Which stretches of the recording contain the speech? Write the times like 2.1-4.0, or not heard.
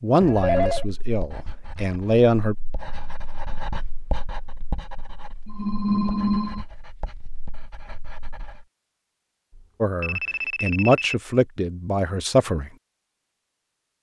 0.0-2.5, 9.8-12.7.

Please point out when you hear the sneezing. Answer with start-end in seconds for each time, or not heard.
not heard.